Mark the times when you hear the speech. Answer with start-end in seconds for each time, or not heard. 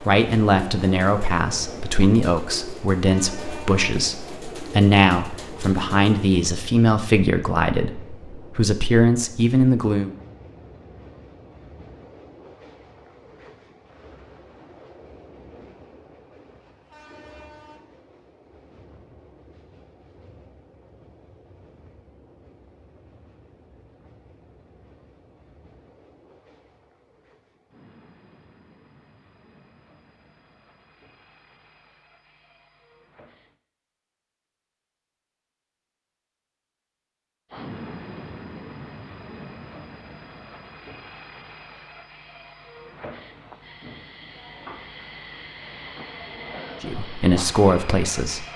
0.0-10.2, 46.8-48.5.